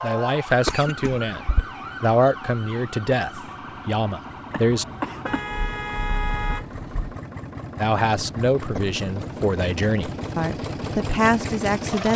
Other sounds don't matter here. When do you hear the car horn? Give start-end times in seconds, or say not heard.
5.2-7.2.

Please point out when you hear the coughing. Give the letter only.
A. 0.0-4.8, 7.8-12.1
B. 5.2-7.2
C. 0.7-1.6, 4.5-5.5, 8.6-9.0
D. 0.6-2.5
C.